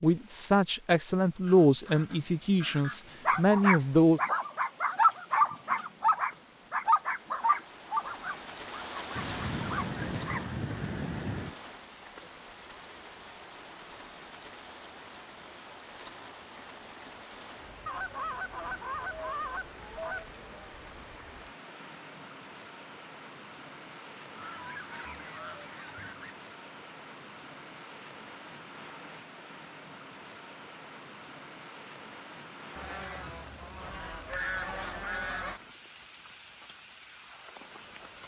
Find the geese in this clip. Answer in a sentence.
The geese can be heard from 1.4 to 3.2 s, from 9.2 to 11.6 s, from 17.9 to 20.3 s, from 24.4 to 26.4 s and from 32.8 to 35.6 s.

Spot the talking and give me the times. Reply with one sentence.
You can hear the talking from 0.0 to 4.2 s.